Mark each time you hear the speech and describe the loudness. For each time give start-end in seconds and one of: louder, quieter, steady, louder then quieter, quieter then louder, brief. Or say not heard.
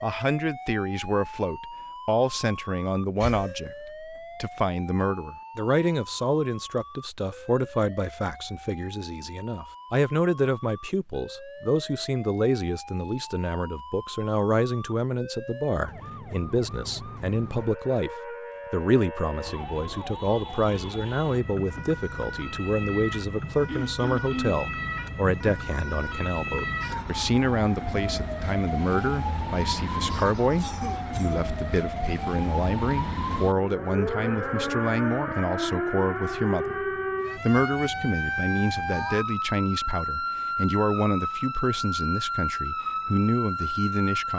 0.0-44.3 steady.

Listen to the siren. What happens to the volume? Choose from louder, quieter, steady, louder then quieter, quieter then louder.
louder.